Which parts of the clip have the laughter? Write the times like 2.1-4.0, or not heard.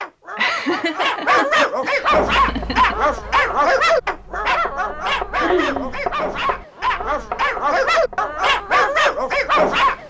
0.3-3.0, 5.3-6.0.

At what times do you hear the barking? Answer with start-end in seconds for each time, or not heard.
0.0-10.0.